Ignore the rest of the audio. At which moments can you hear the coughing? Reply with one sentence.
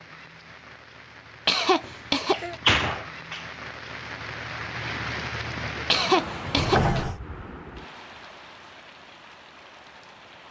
The coughing can be heard from 1.4 to 2.5 s and from 5.9 to 7.0 s.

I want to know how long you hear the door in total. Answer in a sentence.
The door can be heard for 2 seconds in total.